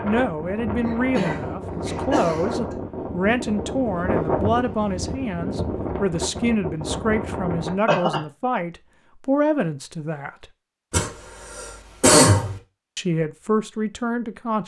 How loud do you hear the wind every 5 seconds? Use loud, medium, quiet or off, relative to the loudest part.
loud, loud, off.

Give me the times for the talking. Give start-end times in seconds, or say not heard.
0.0-10.4, 12.9-14.6.